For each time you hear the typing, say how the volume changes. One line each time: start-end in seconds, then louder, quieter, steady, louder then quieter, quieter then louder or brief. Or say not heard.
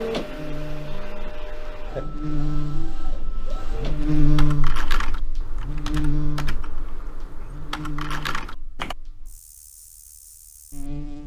3.5-8.9 quieter then louder.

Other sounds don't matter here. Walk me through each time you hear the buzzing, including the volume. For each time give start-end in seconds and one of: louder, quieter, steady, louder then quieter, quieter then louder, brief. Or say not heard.
0.1-11.2 louder then quieter.